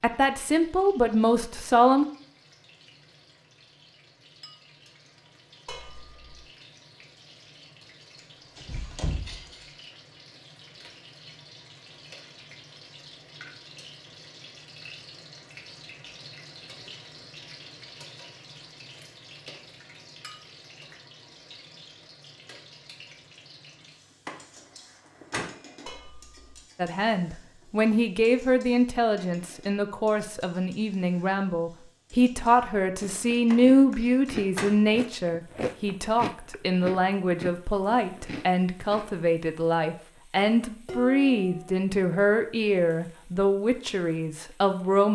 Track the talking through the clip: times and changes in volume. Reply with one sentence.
The talking can be heard briefly from 0.0 to 2.0 s; and from 26.8 to 45.1 s, at a steady volume.